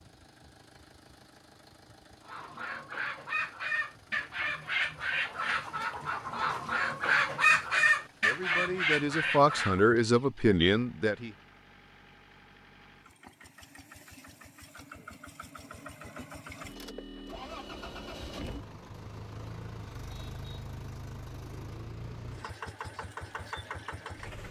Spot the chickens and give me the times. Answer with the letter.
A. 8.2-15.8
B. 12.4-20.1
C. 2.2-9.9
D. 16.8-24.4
C.